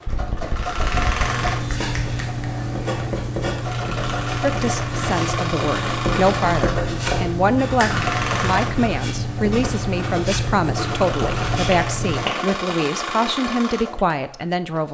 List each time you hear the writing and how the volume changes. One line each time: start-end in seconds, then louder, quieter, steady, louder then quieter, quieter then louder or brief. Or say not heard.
1.1-12.3 steady.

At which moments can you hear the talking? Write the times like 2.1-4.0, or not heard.
4.4-14.8.